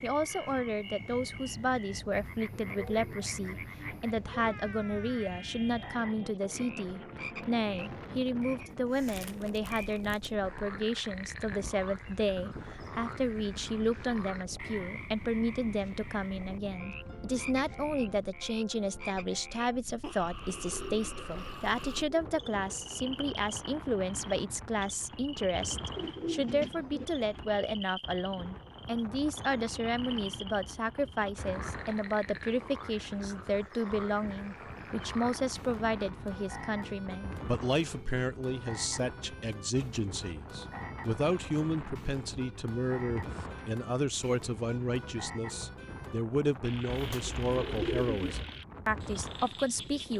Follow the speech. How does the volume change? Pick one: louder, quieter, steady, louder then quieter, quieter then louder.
steady.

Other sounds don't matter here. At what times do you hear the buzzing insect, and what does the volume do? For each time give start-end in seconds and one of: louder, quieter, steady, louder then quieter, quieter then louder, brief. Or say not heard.
not heard.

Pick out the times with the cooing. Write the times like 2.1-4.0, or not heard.
2.5-4.5, 20.4-23.2, 25.9-27.1, 46.9-48.5.